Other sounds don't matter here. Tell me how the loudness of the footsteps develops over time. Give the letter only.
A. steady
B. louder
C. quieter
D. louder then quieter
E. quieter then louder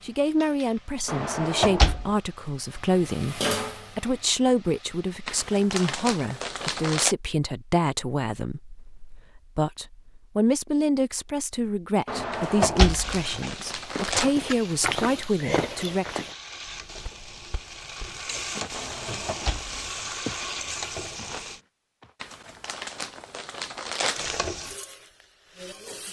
E.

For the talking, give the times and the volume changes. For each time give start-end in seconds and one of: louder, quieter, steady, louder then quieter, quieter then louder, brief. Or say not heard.
0.0-16.2 steady.